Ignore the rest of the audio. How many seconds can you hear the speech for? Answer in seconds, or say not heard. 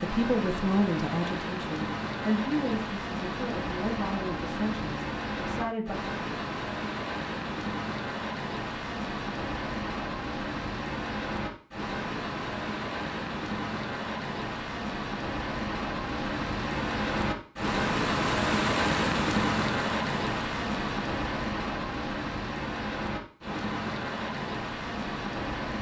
6 s.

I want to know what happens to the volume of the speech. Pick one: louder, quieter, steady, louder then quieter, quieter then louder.
quieter.